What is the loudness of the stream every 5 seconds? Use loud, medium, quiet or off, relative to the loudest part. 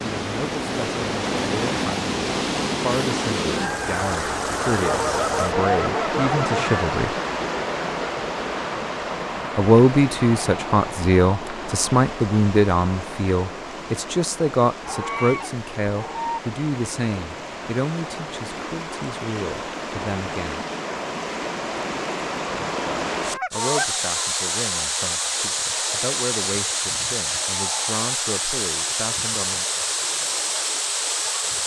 loud, loud, medium, medium, loud, loud, loud.